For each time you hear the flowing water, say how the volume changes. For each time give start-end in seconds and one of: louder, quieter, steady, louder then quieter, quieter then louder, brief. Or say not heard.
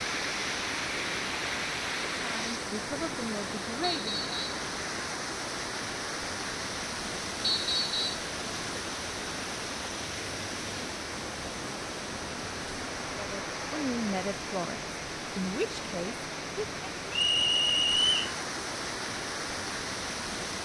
0.0-20.5 steady.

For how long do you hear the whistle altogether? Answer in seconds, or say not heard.
3 s.